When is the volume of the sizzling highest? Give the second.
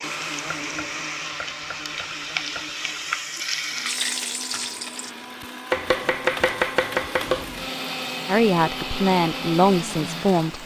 4 s.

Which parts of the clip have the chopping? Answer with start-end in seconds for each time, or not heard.
0.5-3.2, 5.7-7.5.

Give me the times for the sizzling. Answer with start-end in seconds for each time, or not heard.
0.0-5.2, 7.2-10.6.